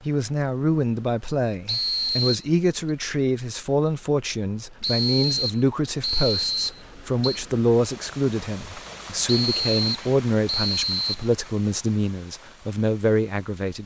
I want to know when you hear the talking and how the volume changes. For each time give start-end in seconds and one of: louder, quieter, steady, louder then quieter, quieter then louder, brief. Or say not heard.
0.1-13.8 steady.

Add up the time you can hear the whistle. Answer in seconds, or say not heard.
6 s.